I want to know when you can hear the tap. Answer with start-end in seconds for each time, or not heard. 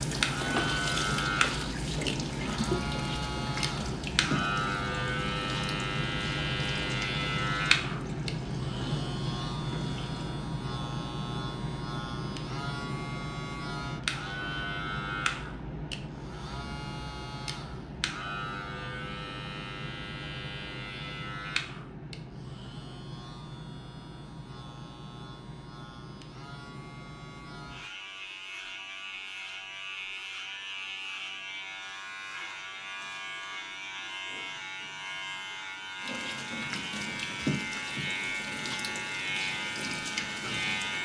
0.0-10.3, 36.0-40.9.